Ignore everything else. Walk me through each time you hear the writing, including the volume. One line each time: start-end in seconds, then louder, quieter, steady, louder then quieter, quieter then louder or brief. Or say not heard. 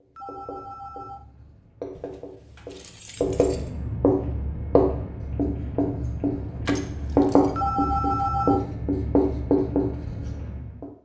0.0-10.8 louder.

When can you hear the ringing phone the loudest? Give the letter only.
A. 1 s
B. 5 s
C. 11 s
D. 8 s
D.